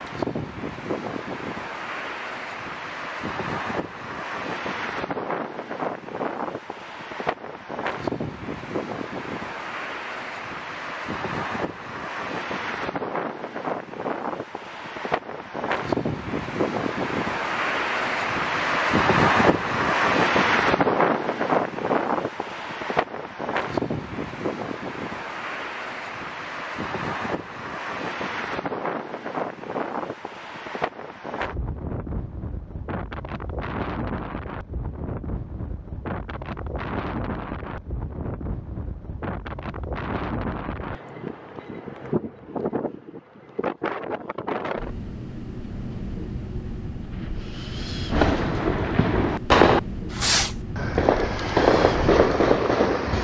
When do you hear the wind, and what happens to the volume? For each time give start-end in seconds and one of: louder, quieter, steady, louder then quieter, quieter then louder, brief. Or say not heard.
0.0-52.9 louder then quieter.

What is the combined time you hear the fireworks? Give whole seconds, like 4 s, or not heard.
5 s.